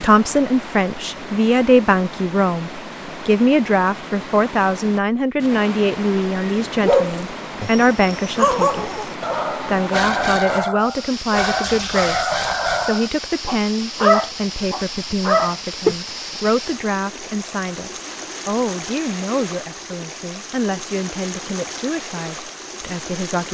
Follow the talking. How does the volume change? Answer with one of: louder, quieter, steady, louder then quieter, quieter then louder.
quieter.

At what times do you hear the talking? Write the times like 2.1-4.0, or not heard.
0.0-23.4.